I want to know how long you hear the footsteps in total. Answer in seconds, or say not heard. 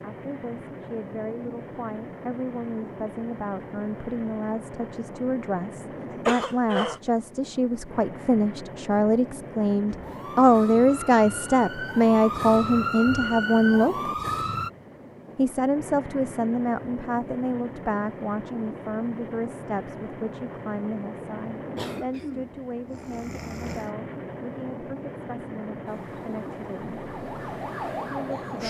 not heard.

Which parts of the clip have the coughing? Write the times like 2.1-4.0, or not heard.
6.1-7.0, 21.8-23.9.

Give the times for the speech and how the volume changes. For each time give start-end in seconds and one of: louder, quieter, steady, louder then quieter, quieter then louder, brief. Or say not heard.
0.0-14.1 louder
15.3-27.0 quieter
28.1-28.6 brief.